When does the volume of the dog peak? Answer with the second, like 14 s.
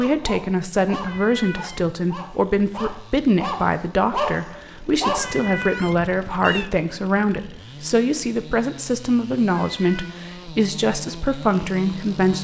4 s.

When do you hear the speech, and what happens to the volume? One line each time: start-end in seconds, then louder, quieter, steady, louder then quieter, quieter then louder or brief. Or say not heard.
0.0-12.3 steady.